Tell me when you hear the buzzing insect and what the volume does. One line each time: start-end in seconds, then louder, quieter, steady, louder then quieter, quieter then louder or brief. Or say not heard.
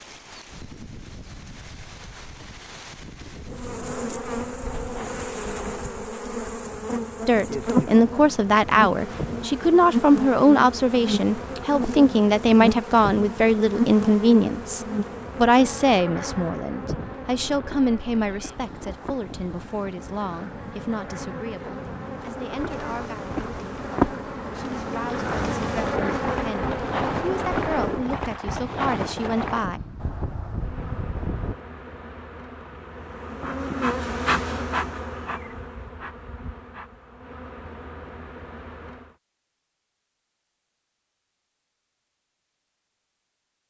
3.5-28.1 quieter then louder
30.5-39.1 louder then quieter.